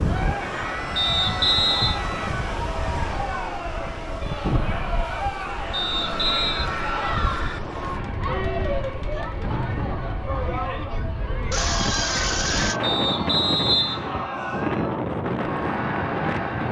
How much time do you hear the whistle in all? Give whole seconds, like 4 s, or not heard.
3 s.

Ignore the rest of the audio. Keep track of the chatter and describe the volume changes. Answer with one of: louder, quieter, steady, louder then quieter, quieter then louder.
steady.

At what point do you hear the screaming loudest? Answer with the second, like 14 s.
12 s.